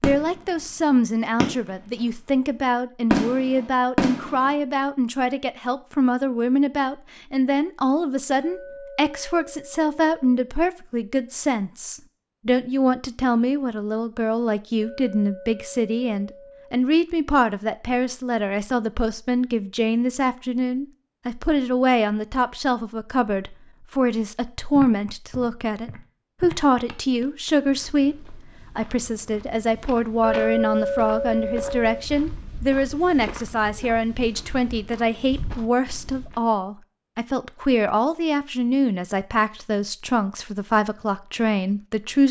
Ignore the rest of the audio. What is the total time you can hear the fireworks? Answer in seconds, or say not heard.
2 s.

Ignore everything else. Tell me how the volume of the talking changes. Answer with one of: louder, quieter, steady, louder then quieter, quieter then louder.
steady.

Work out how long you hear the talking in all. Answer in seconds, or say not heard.
42 s.